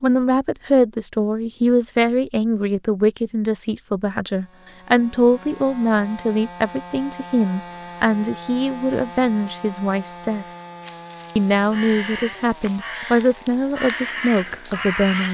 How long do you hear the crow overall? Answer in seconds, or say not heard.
5 s.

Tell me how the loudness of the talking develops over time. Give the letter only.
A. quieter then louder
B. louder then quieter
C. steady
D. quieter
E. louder
C.